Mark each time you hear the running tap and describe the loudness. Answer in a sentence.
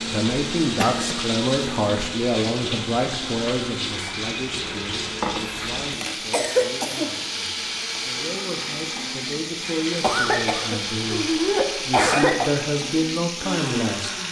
The running tap can be heard from 0.0 to 14.2 s, at a steady volume.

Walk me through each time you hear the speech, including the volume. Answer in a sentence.
The speech can be heard from 0.1 to 11.2 s, getting quieter then louder; and briefly from 11.8 to 14.1 s.